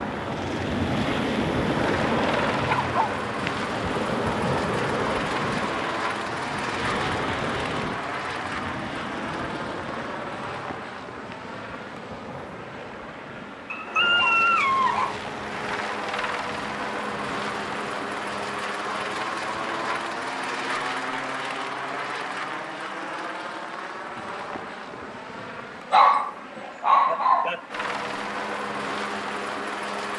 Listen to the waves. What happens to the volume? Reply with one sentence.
The loudness of the waves goes down.